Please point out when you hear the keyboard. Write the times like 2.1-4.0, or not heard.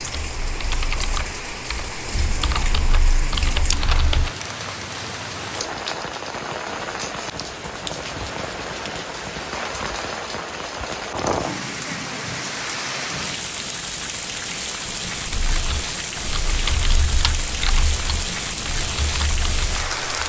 0.0-4.3, 15.1-20.2.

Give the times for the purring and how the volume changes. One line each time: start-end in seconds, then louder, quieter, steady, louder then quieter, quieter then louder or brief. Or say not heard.
not heard.